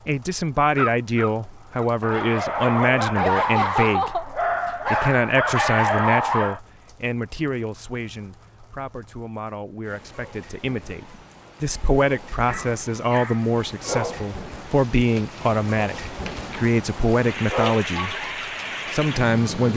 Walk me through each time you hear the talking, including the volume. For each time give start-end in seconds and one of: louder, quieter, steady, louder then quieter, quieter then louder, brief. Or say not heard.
0.1-18.2 quieter then louder
18.9-19.7 brief.